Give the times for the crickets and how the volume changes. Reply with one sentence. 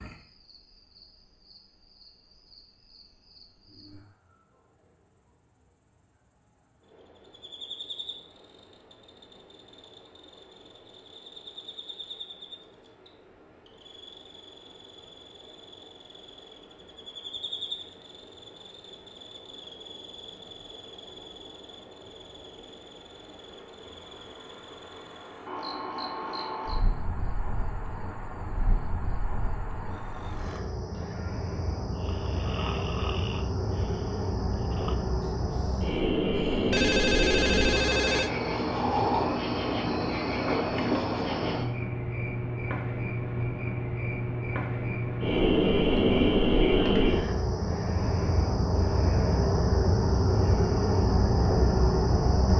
The crickets can be heard from 0.0 to 52.5 s, getting louder.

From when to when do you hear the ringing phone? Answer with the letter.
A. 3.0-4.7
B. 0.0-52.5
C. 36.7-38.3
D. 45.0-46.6
C.